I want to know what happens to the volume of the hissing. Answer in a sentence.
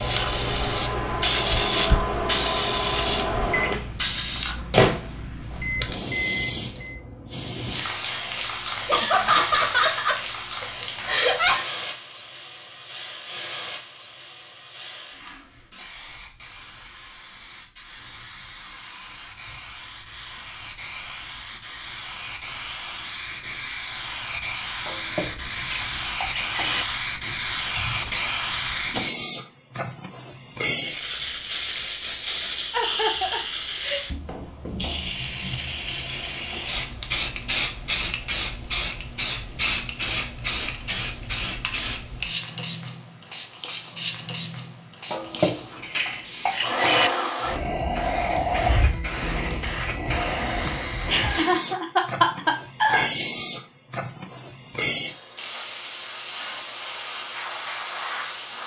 The volume of the hissing goes down, then up.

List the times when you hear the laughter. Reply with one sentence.
You can hear the laughter from 8.8 to 11.6 s, from 32.7 to 34.0 s and from 51.1 to 53.0 s.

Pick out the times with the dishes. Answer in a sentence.
You can hear the dishes from 24.9 to 26.9 s and from 45.1 to 47.1 s.